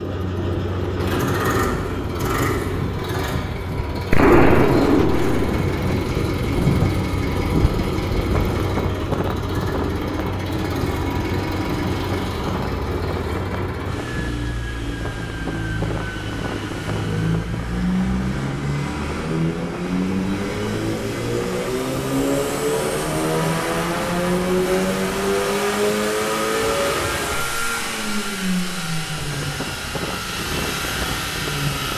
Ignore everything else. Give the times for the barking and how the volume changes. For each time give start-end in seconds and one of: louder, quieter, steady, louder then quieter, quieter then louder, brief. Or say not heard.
not heard.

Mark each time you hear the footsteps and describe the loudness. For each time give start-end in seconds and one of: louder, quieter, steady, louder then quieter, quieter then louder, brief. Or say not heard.
not heard.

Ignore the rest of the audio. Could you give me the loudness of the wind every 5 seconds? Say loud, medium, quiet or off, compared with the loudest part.
medium, loud, medium, medium, medium, medium, medium.